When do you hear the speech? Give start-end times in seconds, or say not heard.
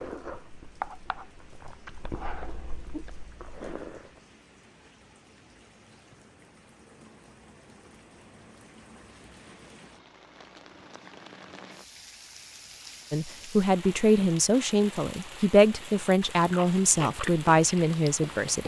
13.1-18.6.